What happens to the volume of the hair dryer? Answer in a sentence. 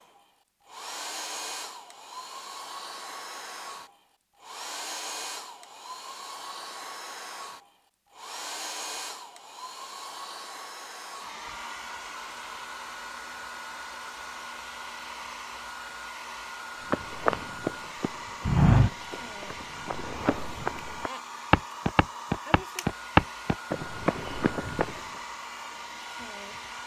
The volume of the hair dryer stays about the same.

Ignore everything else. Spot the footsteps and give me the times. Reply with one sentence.
The footsteps can be heard from 16.9 to 25.0 s.